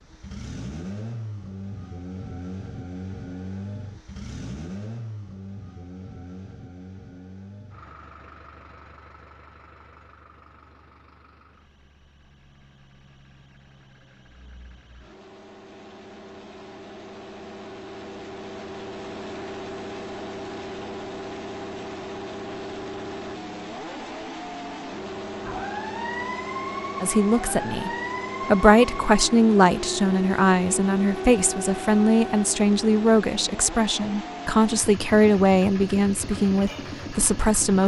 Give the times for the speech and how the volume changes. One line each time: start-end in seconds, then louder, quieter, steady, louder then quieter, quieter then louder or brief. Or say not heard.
27.0-37.8 steady.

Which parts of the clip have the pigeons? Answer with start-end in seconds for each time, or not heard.
not heard.